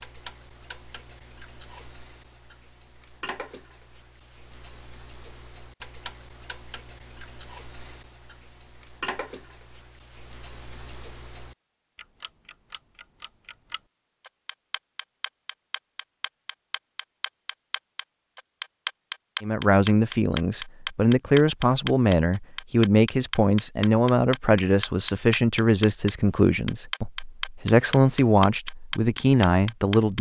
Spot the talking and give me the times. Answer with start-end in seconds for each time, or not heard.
19.4-30.1.